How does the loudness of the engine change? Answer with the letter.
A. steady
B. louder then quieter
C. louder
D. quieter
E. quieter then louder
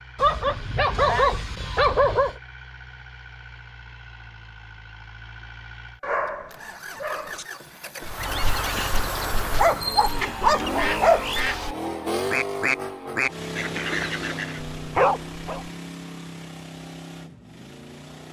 B.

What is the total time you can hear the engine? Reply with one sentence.
You can hear the engine for 18 seconds altogether.